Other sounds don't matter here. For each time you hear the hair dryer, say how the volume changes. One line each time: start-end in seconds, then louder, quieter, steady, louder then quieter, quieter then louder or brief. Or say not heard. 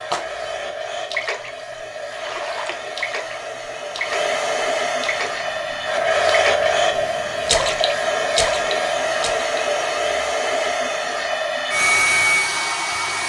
0.0-13.2 louder.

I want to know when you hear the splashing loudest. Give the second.
8 s.